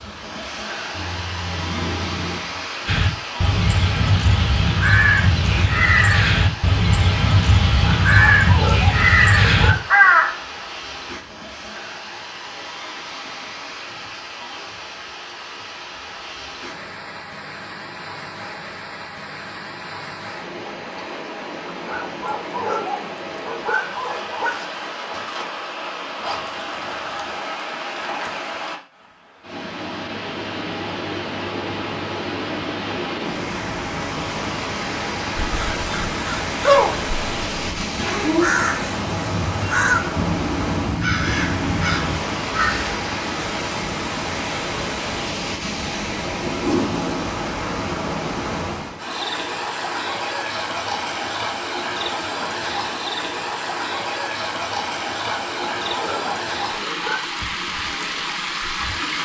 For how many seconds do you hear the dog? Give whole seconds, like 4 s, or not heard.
7 s.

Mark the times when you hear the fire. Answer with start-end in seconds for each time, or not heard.
not heard.